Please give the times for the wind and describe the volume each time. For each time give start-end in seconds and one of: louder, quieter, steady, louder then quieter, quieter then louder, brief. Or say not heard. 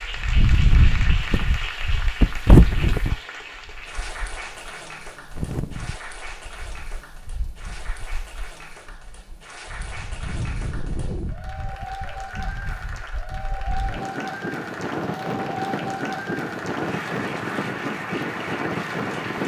0.0-19.4 quieter then louder.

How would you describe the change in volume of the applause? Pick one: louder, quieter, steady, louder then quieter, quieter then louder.
quieter then louder.